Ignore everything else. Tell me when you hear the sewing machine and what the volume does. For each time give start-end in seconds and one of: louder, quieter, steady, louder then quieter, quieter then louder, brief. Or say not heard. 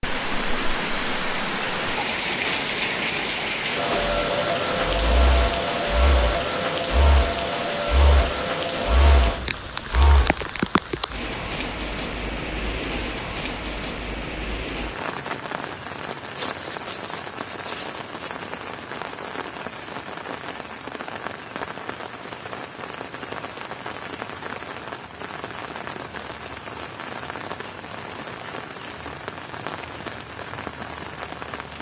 3.9-10.4 steady.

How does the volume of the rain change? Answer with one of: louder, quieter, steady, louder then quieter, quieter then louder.
quieter.